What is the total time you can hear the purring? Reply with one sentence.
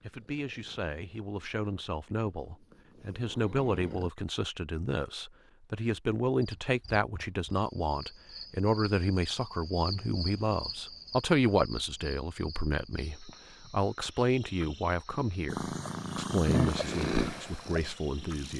The purring can be heard for 7 seconds in total.